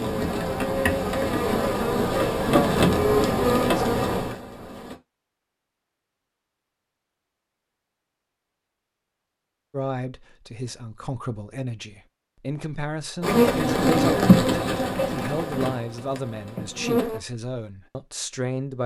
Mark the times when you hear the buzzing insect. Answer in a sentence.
You can hear the buzzing insect from 0.0 to 5.0 s and from 13.2 to 17.2 s.